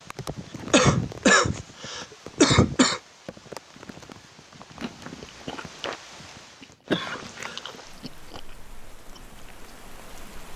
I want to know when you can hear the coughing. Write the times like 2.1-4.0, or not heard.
0.2-3.0, 6.9-7.6.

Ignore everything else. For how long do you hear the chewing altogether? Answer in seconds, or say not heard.
5 s.